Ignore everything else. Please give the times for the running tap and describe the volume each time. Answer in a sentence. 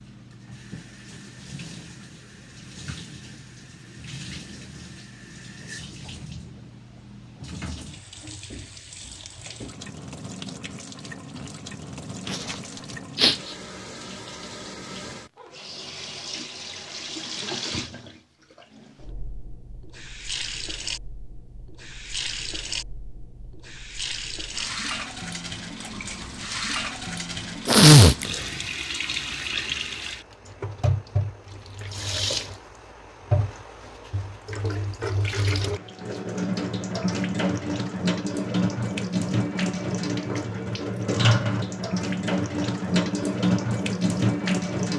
You can hear the running tap from 0.0 to 44.9 s, getting louder.